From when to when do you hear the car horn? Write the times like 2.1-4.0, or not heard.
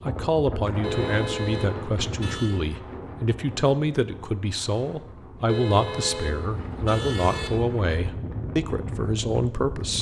0.8-2.6, 5.5-7.5.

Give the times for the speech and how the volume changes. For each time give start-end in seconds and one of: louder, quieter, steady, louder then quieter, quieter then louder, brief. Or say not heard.
0.0-9.9 steady.